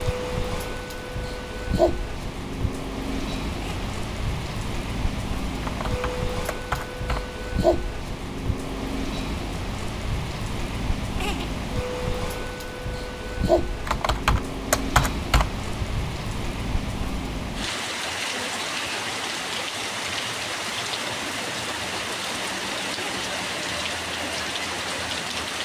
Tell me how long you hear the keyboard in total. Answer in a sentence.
The keyboard can be heard for 4 seconds in total.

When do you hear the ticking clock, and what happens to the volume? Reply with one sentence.
The ticking clock can't be heard in this clip.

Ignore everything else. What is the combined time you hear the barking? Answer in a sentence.
The barking can't be heard in this clip.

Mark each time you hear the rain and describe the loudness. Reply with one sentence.
You can hear the rain from 0.0 to 25.5 s, at a steady volume.